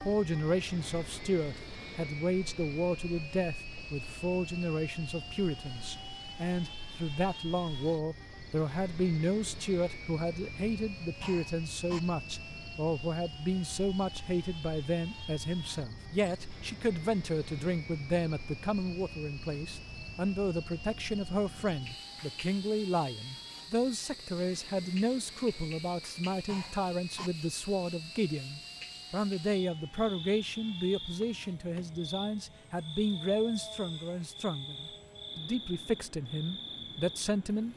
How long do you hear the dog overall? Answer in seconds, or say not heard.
not heard.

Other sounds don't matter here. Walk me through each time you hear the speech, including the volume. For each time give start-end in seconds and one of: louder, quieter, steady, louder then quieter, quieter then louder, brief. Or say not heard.
0.0-37.7 steady.